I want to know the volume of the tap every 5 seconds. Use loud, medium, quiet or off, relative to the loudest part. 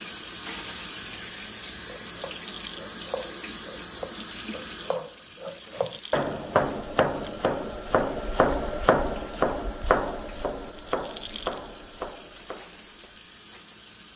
loud, medium, medium.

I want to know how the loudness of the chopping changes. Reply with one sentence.
The loudness of the chopping goes up, then down.